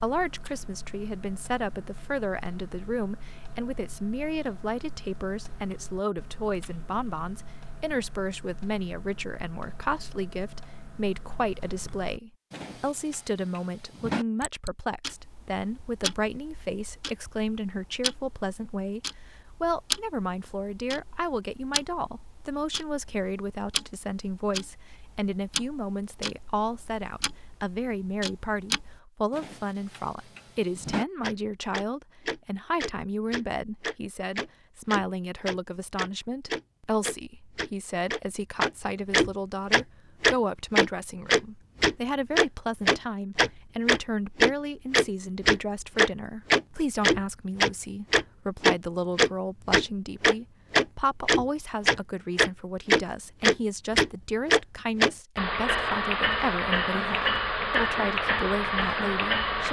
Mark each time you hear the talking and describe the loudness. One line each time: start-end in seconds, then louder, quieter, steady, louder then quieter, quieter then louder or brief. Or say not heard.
0.0-59.6 steady.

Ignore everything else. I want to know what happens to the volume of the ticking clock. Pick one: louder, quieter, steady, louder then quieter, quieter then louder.
louder.